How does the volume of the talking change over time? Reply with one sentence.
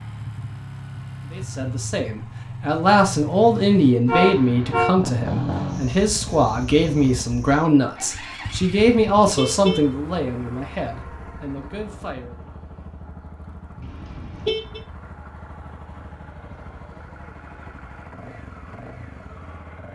The volume of the talking goes down.